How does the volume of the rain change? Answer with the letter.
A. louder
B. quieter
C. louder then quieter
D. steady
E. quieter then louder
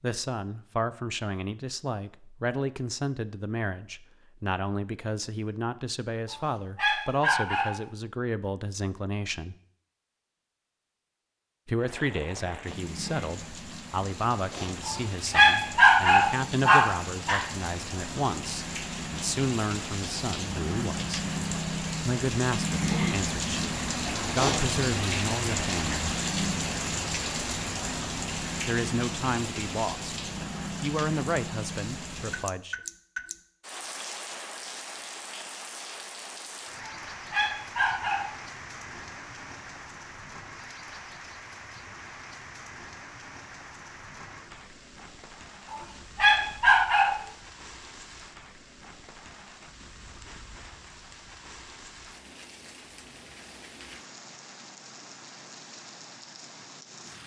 C.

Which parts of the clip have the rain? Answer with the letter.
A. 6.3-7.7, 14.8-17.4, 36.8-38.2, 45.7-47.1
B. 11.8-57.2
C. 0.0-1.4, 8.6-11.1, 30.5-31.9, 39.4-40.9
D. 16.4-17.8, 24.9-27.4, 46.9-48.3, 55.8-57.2
B.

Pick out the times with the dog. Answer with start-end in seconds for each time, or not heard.
6.3-7.7, 14.8-17.4, 36.8-38.2, 45.7-47.1.